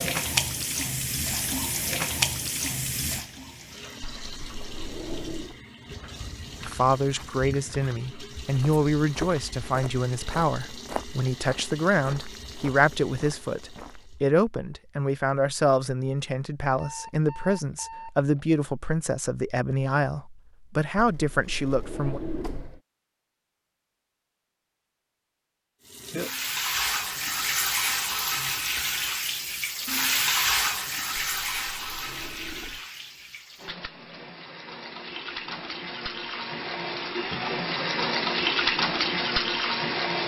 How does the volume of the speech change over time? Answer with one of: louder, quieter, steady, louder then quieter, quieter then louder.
steady.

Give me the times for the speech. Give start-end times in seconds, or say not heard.
6.7-22.2.